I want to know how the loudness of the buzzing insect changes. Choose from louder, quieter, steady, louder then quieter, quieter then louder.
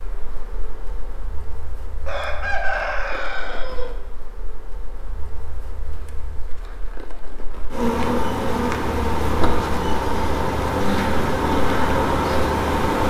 louder.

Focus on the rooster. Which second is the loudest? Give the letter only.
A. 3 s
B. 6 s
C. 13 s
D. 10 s
A.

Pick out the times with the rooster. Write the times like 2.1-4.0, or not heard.
2.0-3.9.